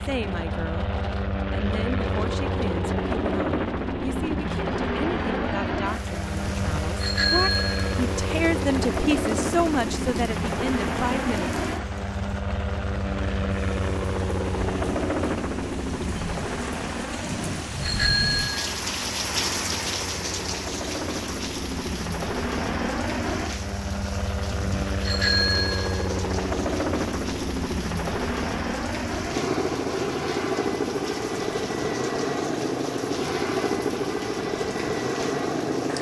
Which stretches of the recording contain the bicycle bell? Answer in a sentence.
You can hear the bicycle bell from 6.5 to 8.0 s, from 17.3 to 18.6 s and from 24.5 to 26.1 s.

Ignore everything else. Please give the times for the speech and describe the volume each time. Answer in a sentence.
You can hear the speech briefly from 0.0 to 0.9 s; and from 1.5 to 11.6 s, getting louder.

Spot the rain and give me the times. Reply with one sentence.
You can hear the rain from 0.0 to 35.9 s.